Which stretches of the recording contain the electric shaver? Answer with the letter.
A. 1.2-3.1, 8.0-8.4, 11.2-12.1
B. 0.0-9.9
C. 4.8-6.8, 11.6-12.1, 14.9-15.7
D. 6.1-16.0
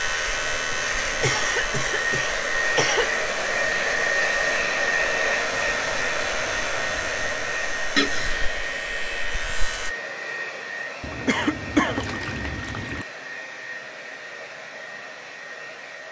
B.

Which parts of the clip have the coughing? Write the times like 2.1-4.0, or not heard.
1.2-3.1, 8.0-8.4, 11.2-12.1.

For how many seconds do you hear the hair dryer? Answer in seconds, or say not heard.
16 s.